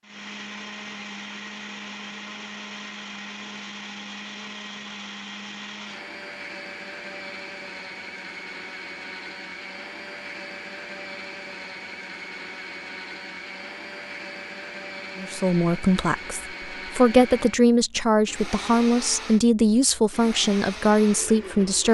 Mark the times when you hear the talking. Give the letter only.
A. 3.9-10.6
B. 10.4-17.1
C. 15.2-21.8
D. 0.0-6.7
C.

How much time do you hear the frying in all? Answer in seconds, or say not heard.
not heard.